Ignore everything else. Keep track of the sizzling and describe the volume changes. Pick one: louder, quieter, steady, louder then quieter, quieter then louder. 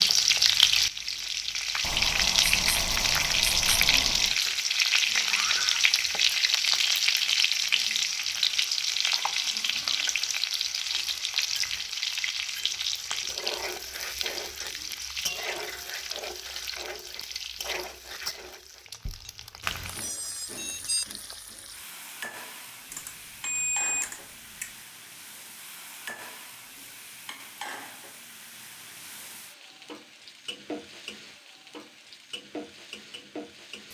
quieter.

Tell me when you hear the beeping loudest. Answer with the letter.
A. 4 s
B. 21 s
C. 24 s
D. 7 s
C.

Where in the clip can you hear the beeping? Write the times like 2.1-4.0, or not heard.
1.8-4.4, 19.1-21.1, 22.9-24.7.